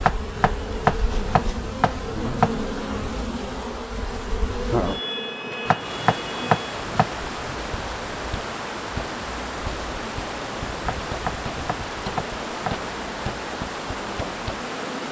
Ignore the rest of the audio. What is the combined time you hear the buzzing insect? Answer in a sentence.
The buzzing insect can be heard for 15 seconds in total.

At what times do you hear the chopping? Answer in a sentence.
The chopping can be heard from 0.0 to 2.8 s, from 5.7 to 7.2 s and from 11.1 to 12.9 s.